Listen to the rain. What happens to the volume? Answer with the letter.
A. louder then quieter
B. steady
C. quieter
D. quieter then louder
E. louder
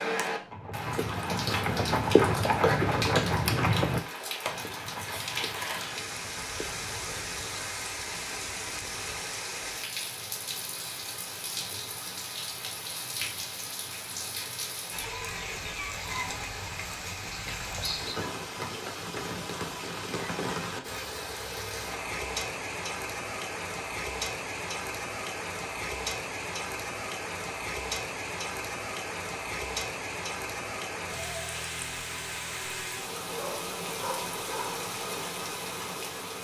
B.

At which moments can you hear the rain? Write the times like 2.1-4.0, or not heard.
0.0-36.3.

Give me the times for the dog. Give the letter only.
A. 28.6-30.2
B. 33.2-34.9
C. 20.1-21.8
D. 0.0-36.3
B.